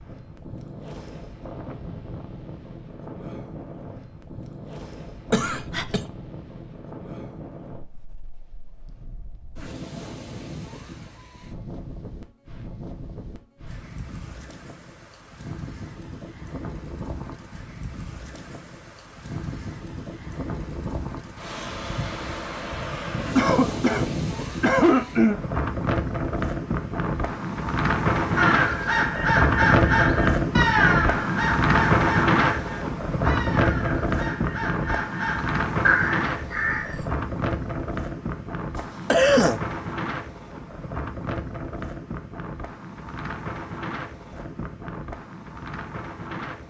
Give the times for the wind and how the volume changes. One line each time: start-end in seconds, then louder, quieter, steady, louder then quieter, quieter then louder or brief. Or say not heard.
0.0-46.6 louder then quieter.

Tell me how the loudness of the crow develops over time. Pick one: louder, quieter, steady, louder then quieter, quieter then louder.
quieter then louder.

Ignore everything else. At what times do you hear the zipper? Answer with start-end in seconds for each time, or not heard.
not heard.